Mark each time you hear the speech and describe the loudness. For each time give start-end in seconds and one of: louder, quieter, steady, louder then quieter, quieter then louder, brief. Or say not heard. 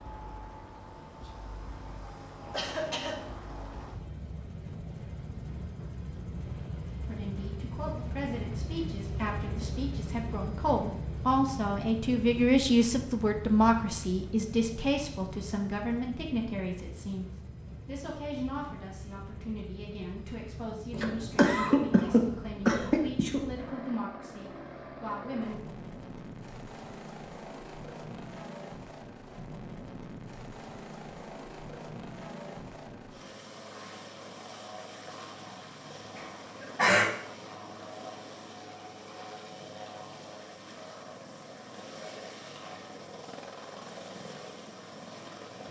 7.0-25.6 louder then quieter.